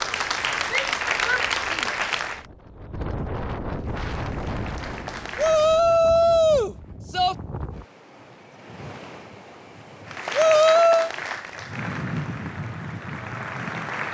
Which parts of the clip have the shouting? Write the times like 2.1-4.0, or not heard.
0.7-1.9, 5.3-7.3, 10.3-11.1.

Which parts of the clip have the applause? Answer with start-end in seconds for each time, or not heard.
0.0-2.5, 3.8-5.8, 10.1-14.0.